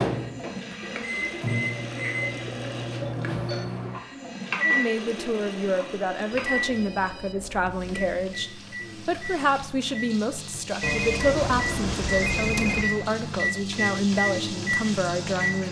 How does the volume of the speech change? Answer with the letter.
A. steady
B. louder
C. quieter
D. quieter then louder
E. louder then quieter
A.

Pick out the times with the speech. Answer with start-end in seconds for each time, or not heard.
4.5-15.6.